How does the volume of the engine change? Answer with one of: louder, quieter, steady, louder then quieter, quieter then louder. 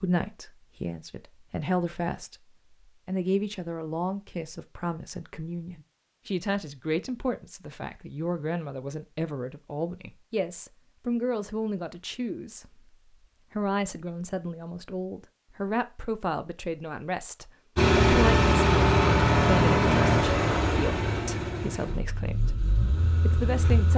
quieter.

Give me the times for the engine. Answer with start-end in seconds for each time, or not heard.
17.8-23.9.